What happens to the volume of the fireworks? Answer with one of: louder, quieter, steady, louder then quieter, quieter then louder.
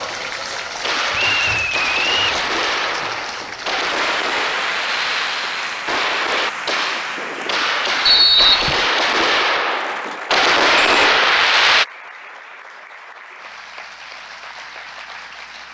louder.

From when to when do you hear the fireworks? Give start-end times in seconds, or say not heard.
0.8-11.8.